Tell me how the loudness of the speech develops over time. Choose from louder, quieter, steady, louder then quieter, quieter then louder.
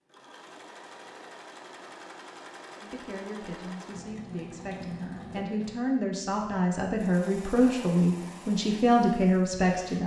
louder.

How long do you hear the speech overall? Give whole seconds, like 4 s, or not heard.
7 s.